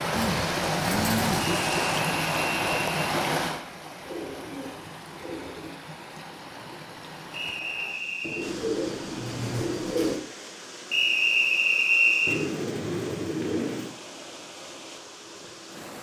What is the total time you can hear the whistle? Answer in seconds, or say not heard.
4 s.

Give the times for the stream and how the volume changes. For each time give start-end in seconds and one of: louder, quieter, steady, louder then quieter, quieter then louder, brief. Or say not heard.
0.0-15.9 quieter.